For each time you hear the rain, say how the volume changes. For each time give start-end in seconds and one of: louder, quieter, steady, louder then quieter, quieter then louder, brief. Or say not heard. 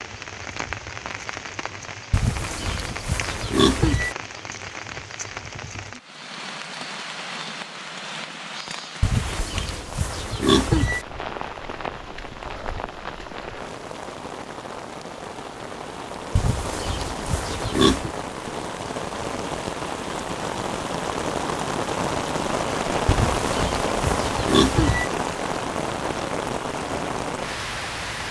0.0-28.2 louder.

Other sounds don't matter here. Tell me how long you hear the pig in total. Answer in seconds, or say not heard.
8 s.